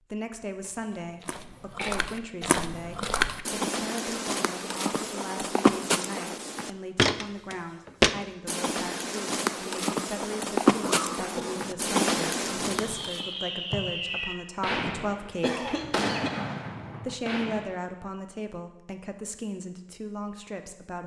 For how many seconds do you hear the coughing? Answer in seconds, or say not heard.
3 s.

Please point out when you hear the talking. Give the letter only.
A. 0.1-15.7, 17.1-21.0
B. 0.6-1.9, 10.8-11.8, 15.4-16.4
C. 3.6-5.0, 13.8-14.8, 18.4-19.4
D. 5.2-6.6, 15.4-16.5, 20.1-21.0
A.